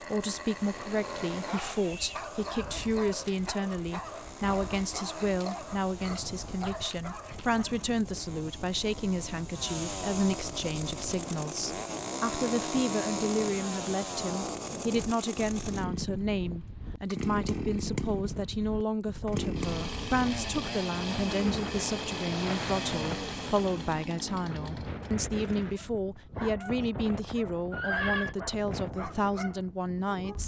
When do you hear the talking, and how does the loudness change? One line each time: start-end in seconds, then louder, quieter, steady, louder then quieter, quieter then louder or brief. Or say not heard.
0.0-30.4 steady.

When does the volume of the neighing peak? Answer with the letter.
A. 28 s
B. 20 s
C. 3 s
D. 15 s
A.